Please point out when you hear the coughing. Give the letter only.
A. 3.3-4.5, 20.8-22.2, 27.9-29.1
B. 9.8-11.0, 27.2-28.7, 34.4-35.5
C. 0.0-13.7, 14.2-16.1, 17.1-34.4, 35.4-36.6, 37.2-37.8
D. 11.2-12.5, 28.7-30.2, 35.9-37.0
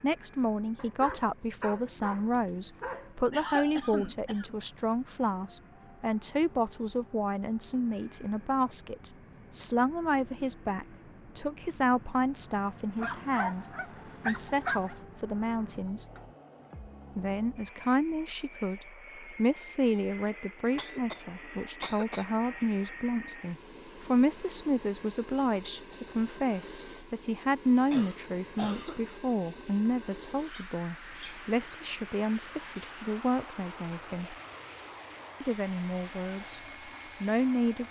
A.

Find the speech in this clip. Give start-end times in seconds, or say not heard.
0.0-13.7, 14.2-16.1, 17.1-34.4, 35.4-36.6, 37.2-37.8.